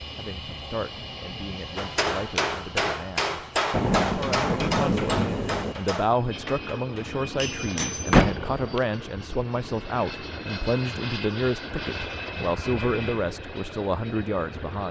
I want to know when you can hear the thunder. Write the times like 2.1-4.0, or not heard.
3.7-5.8.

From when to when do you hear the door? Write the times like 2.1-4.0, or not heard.
8.1-8.8.